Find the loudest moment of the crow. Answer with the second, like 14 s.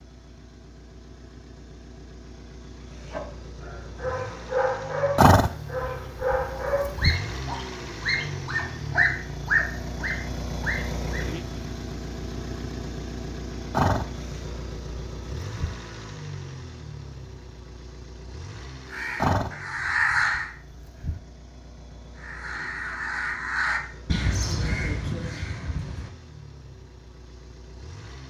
20 s.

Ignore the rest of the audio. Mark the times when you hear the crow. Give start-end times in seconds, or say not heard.
18.8-20.5, 22.1-26.1.